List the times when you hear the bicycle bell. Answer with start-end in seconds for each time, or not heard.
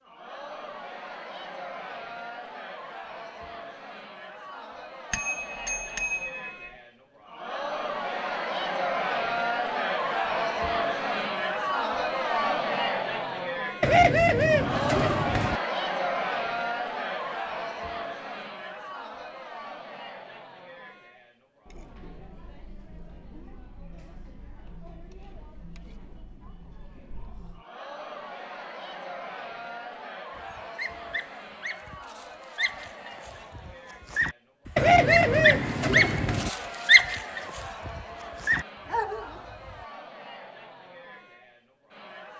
5.1-6.7.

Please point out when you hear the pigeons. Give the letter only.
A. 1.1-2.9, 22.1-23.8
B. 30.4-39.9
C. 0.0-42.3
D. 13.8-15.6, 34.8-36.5
D.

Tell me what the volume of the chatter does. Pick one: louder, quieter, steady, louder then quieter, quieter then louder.
louder then quieter.